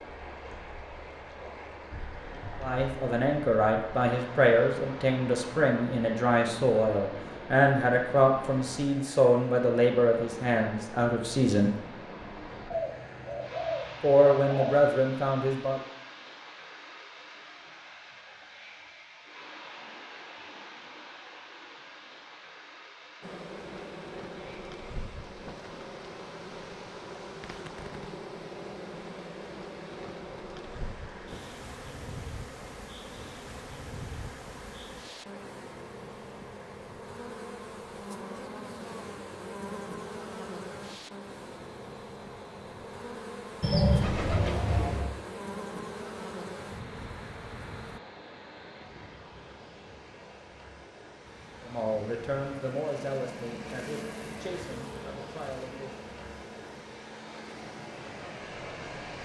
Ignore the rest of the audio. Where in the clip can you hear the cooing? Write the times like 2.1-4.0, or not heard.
12.7-14.9, 43.6-45.1.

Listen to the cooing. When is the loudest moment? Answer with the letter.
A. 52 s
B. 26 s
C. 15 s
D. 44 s
D.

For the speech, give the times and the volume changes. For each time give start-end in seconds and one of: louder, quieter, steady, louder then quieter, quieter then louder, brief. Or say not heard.
2.6-11.8 steady
14.0-15.8 brief
51.6-56.0 quieter.